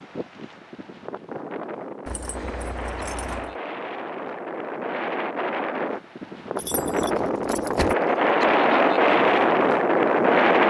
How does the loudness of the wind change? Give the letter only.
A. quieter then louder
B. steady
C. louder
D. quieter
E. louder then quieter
C.